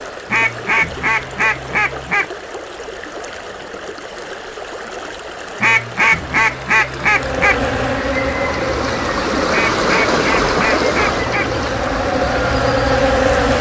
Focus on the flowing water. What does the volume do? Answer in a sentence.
The volume of the flowing water goes up.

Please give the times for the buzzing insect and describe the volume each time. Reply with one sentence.
You can hear the buzzing insect from 7.0 to 13.5 s, getting quieter then louder.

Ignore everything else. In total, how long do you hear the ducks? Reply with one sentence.
You can hear the ducks for 6 seconds altogether.